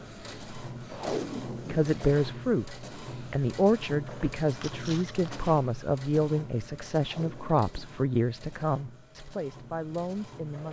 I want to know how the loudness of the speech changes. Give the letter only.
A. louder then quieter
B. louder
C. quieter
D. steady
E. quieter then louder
C.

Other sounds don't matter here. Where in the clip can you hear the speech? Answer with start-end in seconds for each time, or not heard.
1.6-10.6.